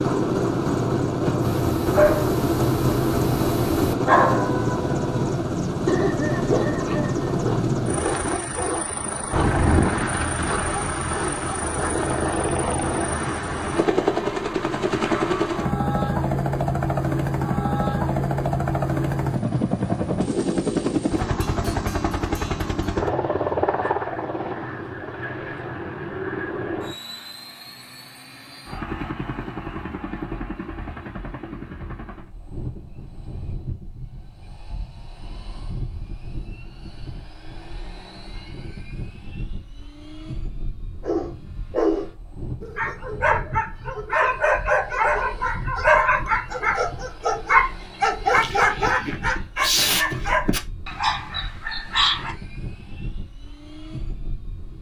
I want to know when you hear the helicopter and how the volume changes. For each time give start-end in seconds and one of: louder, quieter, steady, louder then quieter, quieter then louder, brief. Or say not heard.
0.0-54.7 quieter.